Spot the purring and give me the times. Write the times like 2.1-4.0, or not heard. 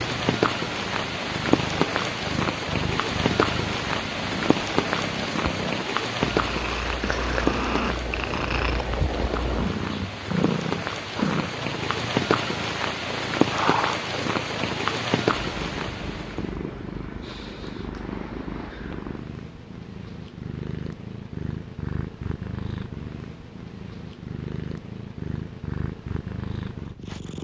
0.0-27.3.